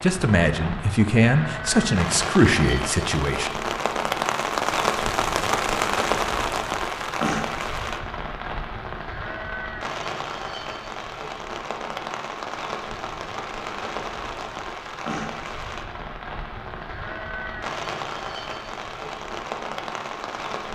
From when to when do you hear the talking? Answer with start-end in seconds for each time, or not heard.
0.0-3.6.